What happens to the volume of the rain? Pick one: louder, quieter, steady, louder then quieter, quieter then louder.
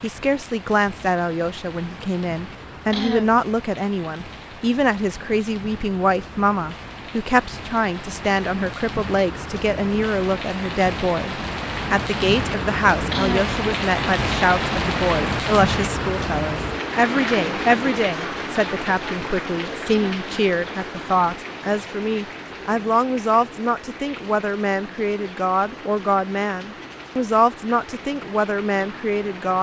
louder then quieter.